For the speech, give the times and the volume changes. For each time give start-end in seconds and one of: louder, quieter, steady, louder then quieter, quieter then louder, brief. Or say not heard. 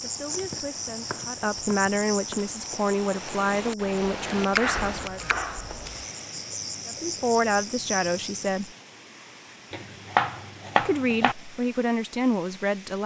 0.0-5.2 louder
6.8-8.7 brief
10.8-13.0 brief.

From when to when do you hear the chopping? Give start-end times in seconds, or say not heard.
0.3-2.5, 4.5-6.0, 9.7-11.3.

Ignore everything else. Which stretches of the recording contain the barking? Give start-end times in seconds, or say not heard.
not heard.